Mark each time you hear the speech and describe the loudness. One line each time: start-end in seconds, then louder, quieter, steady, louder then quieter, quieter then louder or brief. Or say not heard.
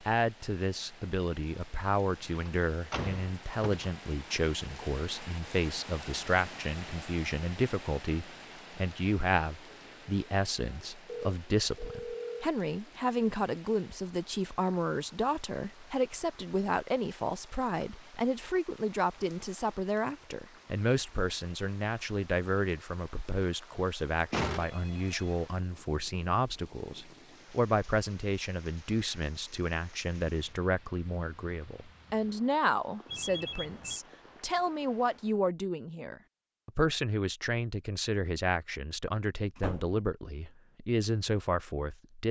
0.0-42.2 steady.